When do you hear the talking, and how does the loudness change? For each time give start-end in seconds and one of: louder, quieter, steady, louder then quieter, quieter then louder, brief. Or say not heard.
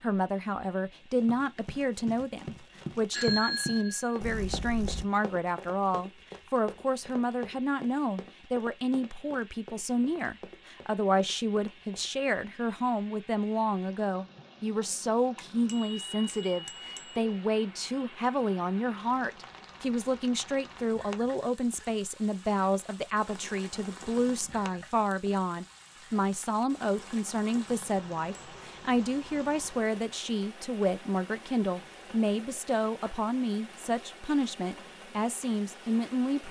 0.0-36.4 steady.